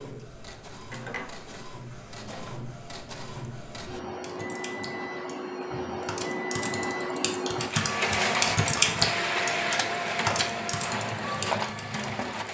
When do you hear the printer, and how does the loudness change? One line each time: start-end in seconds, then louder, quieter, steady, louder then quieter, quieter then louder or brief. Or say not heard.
0.0-12.4 louder.